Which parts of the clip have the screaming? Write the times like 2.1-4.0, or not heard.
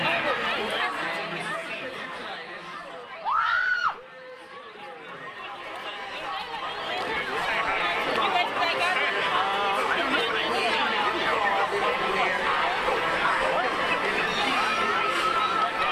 3.2-4.0.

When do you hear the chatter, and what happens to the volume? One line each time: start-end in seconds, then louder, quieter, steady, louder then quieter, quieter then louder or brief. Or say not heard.
0.0-15.8 quieter then louder.